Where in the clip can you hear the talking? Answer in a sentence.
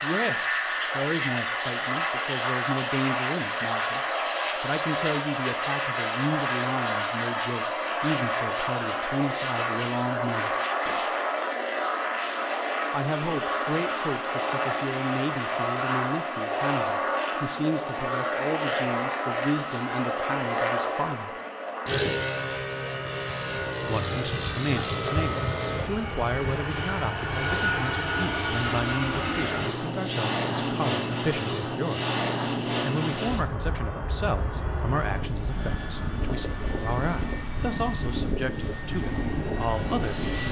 You can hear the talking from 0.0 to 10.5 s, from 12.9 to 21.4 s and from 23.9 to 40.4 s.